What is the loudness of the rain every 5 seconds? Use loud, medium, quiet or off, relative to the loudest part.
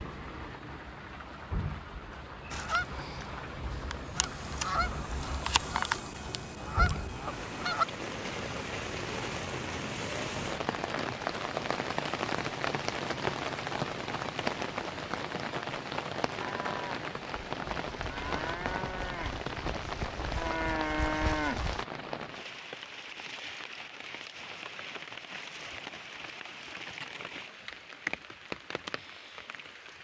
medium, medium, loud, loud, medium, medium.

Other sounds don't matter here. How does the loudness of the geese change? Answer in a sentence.
The loudness of the geese goes up.